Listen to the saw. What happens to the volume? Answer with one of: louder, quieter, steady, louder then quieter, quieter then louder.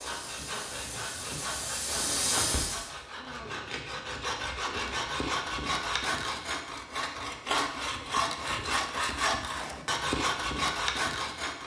louder.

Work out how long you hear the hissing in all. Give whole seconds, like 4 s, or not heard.
3 s.